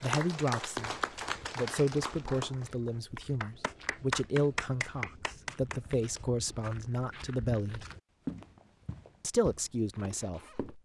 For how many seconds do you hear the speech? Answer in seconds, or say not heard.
9 s.